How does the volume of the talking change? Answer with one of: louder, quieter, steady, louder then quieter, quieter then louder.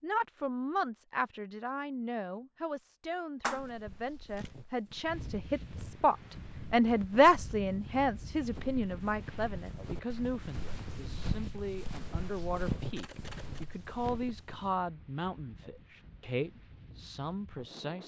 louder then quieter.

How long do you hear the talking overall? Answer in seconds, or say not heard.
18 s.